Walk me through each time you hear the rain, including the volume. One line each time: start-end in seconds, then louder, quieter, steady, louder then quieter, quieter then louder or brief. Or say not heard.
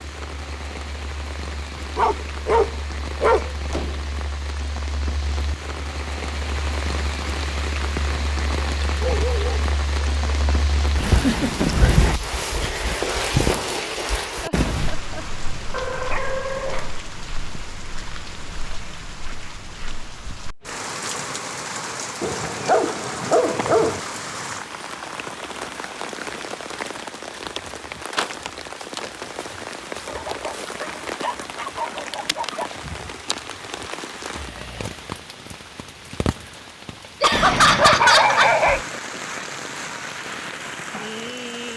0.0-41.7 louder then quieter.